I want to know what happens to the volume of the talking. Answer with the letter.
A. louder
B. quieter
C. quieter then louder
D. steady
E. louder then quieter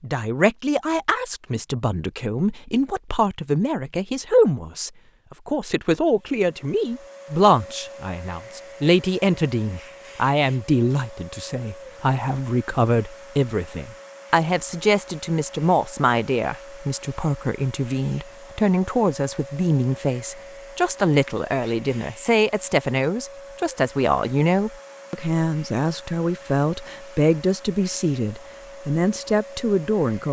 D.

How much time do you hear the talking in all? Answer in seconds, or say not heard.
30 s.